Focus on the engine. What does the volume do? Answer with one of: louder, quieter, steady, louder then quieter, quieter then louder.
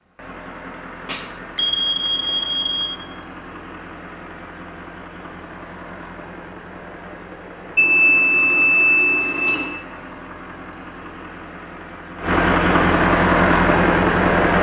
louder.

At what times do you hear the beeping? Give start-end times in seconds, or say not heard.
1.1-2.9, 7.8-9.7.